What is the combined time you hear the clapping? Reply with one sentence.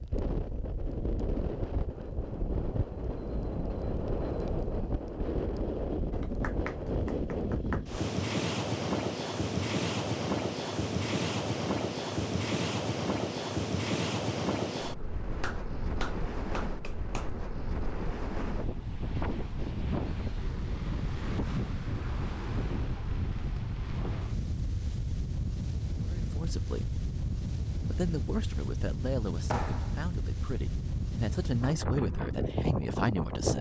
The clapping can be heard for 4 seconds in total.